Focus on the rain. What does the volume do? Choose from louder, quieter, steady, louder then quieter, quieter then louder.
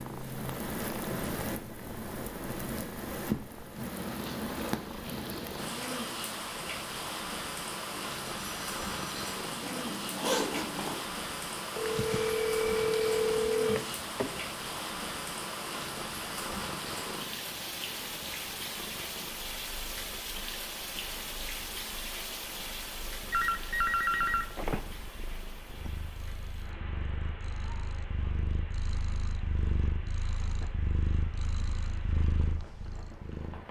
quieter.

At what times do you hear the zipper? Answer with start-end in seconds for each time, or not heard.
9.6-11.0.